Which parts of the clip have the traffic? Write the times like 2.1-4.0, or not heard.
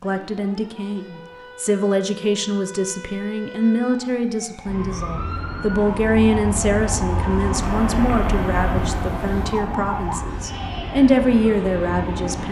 4.7-12.4.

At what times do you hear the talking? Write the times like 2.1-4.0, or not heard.
0.0-12.4.